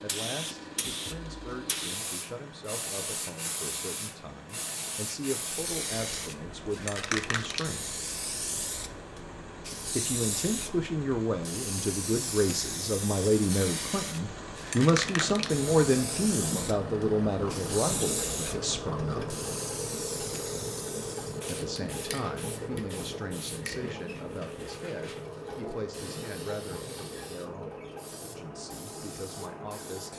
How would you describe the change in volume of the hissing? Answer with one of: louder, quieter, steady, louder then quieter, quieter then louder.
quieter.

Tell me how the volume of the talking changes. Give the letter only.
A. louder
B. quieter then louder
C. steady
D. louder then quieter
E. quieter
D.